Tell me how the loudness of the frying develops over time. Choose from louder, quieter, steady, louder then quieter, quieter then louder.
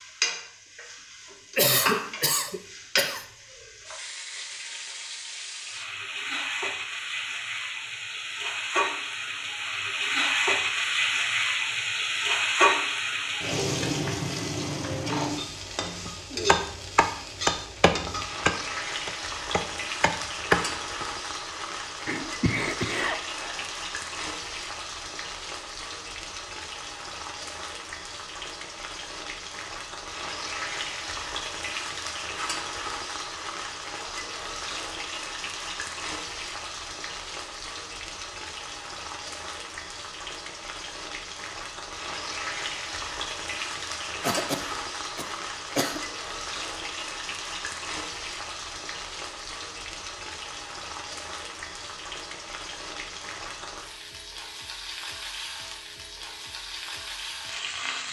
quieter.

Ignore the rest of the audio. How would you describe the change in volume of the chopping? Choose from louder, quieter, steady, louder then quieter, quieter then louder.
quieter then louder.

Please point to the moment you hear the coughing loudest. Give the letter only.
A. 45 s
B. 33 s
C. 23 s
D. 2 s
D.